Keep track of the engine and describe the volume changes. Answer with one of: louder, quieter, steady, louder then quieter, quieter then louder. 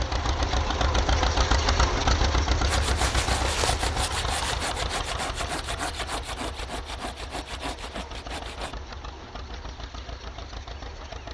quieter.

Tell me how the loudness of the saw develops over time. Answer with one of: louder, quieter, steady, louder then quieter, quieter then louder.
quieter.